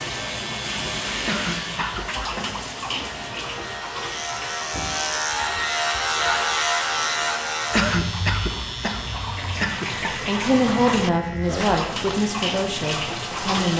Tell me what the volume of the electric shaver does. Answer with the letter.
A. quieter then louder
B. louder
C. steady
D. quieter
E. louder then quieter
E.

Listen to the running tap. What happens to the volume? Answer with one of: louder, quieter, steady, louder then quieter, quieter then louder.
quieter then louder.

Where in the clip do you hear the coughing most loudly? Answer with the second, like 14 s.
8 s.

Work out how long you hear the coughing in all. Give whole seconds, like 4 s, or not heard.
4 s.